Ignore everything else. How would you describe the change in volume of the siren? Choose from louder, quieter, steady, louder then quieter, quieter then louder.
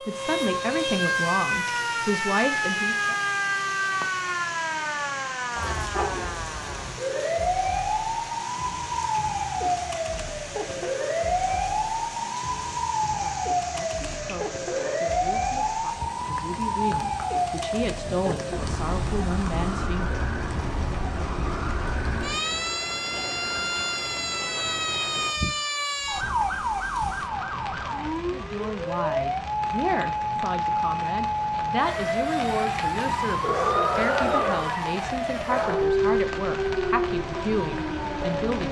steady.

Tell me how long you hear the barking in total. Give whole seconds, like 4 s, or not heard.
3 s.